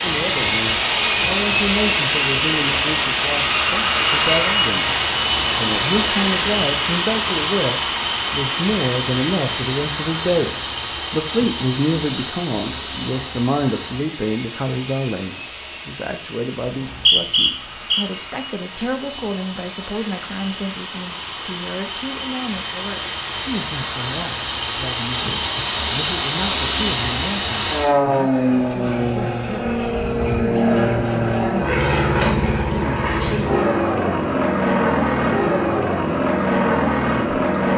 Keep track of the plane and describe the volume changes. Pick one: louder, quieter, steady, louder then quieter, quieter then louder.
quieter then louder.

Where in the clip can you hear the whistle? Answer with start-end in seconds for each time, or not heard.
16.6-18.1.